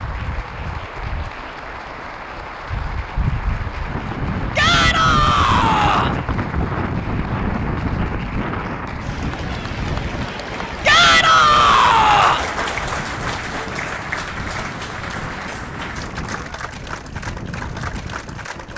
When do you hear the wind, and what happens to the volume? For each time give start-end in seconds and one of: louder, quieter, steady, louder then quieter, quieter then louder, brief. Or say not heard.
0.0-18.7 louder then quieter.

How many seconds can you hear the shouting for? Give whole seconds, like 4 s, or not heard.
3 s.